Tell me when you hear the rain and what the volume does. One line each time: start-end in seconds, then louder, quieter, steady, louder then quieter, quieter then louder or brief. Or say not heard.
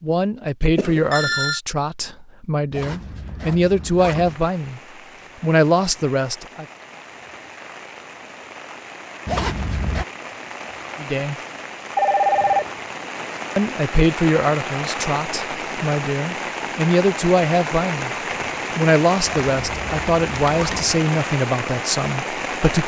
4.2-22.8 louder.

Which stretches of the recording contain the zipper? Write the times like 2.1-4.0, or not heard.
2.7-4.4, 9.2-10.1, 19.2-21.0.